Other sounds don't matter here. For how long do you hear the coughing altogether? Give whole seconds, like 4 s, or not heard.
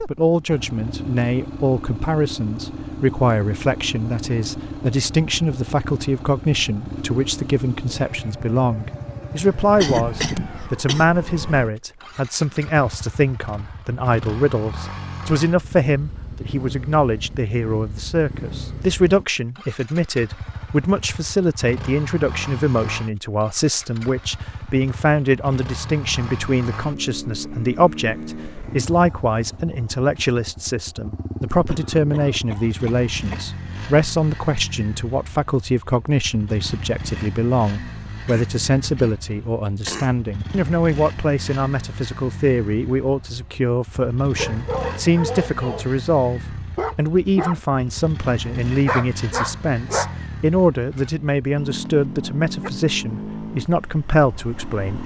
5 s.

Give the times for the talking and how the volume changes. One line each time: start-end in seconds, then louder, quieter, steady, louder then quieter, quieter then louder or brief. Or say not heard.
0.1-55.0 steady.